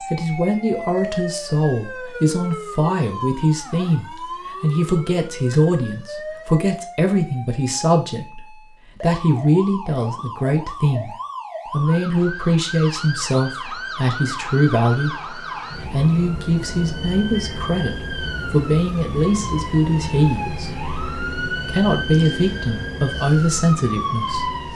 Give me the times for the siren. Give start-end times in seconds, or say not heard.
0.0-24.7.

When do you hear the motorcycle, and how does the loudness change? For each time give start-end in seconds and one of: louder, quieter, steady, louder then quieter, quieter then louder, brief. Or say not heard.
not heard.